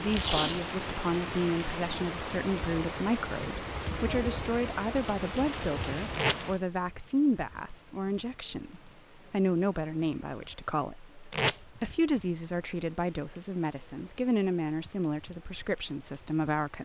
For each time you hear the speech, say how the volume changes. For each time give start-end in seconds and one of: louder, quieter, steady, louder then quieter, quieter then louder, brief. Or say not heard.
0.0-16.7 steady.